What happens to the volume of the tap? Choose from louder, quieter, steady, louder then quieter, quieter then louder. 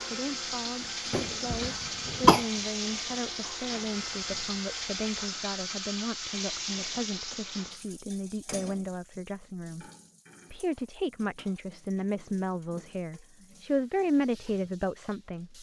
quieter.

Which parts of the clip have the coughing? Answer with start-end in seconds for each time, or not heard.
1.1-2.5.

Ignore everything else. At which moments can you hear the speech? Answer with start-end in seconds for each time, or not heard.
0.1-9.8, 10.5-15.5.